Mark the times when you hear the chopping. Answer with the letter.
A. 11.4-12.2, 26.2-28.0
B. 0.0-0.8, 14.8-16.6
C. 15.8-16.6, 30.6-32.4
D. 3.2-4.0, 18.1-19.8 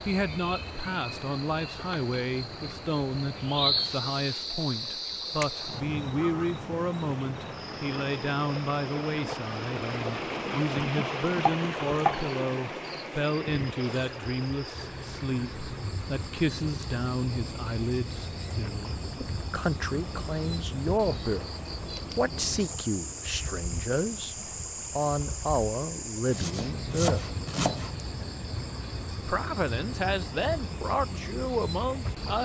A.